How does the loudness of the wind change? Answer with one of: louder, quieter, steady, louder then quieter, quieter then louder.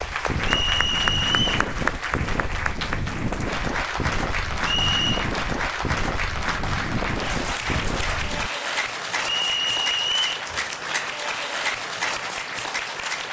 steady.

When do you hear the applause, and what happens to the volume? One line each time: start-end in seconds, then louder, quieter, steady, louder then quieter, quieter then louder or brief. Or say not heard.
0.0-13.2 steady.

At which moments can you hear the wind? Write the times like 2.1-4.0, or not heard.
0.0-8.5.